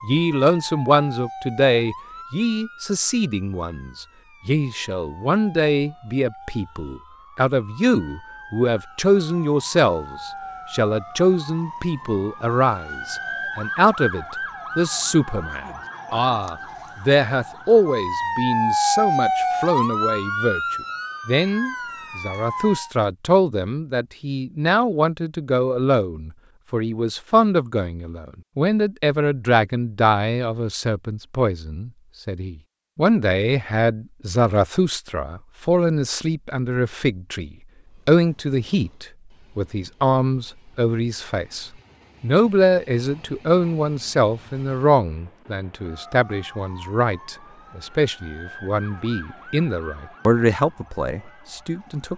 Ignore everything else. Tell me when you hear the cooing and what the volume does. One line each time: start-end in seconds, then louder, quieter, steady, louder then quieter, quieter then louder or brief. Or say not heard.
not heard.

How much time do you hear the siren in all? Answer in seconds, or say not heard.
29 s.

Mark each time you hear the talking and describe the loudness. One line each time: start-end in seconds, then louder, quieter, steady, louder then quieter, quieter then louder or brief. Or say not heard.
0.0-52.1 steady.